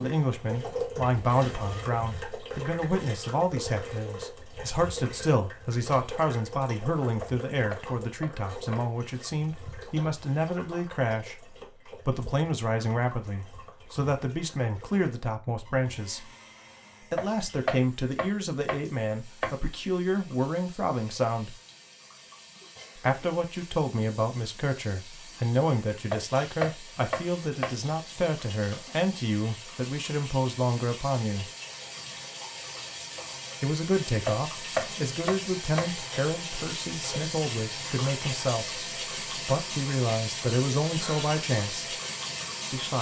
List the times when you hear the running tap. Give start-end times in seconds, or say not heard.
0.0-42.9.